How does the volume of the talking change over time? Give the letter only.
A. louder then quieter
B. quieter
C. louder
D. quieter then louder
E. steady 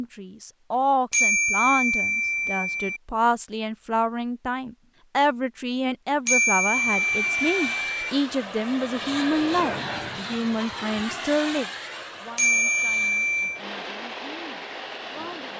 B.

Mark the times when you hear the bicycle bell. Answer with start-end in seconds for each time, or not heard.
1.1-3.0, 6.2-8.1, 12.3-13.6.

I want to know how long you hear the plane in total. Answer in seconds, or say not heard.
9 s.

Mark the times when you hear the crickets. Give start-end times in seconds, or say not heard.
not heard.